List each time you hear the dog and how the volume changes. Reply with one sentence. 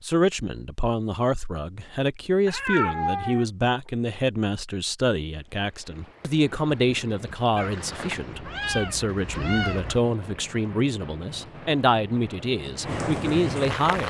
The dog can't be heard in this clip.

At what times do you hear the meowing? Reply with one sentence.
You can hear the meowing from 2.5 to 3.5 s and from 7.5 to 10.0 s.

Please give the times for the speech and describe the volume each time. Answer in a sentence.
You can hear the speech from 0.0 to 14.0 s, at a steady volume.